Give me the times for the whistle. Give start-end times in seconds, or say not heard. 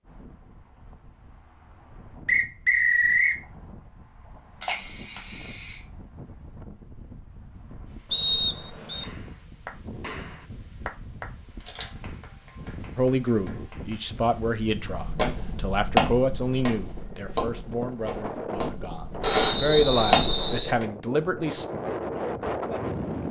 2.2-3.4, 8.1-9.1, 19.2-20.8.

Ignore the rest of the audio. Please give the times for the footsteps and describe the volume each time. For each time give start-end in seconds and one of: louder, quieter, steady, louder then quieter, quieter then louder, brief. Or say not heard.
14.8-20.9 quieter then louder.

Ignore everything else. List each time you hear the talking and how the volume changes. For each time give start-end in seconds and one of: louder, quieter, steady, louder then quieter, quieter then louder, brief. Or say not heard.
12.9-21.6 quieter then louder.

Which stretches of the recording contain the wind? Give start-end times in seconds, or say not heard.
0.0-23.2.